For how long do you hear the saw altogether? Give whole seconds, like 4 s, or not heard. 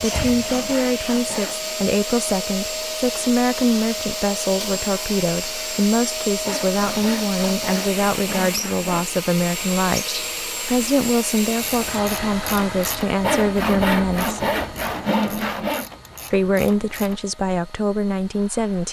7 s.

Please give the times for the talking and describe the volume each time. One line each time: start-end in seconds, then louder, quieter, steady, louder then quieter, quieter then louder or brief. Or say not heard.
0.0-14.4 steady
16.3-18.8 brief.